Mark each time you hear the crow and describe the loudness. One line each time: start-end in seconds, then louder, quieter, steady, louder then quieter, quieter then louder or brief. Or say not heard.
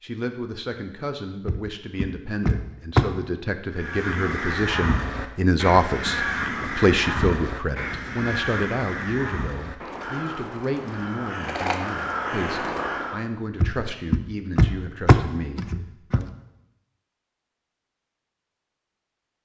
3.7-13.2 quieter then louder.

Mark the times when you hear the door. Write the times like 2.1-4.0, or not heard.
1.4-3.0, 13.6-16.2.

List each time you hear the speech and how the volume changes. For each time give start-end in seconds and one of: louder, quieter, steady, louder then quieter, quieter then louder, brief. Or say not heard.
0.0-16.3 louder then quieter.